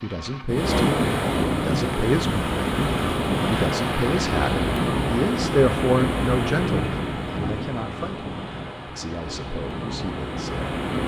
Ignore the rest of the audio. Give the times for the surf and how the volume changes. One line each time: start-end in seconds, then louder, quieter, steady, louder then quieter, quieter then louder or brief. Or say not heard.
0.0-11.0 quieter.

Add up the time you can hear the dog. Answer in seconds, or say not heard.
not heard.